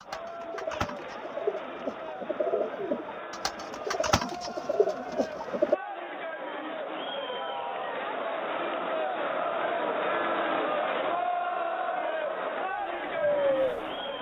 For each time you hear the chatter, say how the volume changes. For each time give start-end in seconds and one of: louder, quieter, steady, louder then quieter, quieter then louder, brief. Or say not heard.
0.0-14.1 louder.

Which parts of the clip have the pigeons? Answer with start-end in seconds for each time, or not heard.
0.0-5.8, 12.7-14.1.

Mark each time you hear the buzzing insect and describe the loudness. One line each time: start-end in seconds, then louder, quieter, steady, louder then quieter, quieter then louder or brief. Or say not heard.
not heard.